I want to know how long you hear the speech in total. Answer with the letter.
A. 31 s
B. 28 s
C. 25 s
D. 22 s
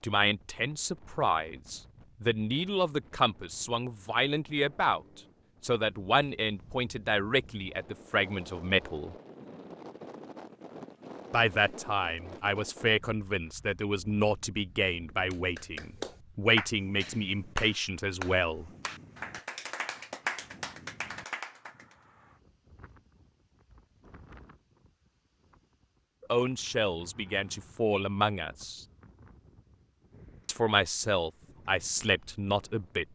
D.